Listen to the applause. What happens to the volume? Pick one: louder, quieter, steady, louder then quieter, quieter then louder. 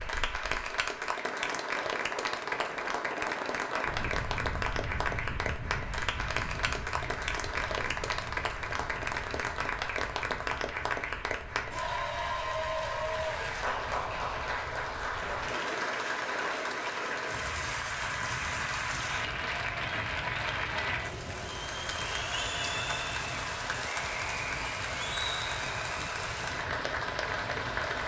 steady.